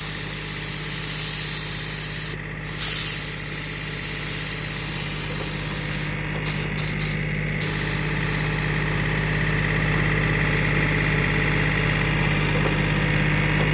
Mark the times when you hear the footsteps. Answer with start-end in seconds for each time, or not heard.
not heard.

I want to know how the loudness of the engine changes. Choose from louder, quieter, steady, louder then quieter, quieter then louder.
louder.